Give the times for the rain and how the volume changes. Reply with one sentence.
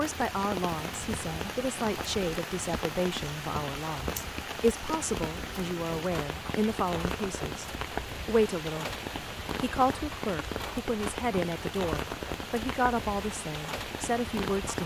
You can hear the rain from 0.0 to 14.8 s, at a steady volume.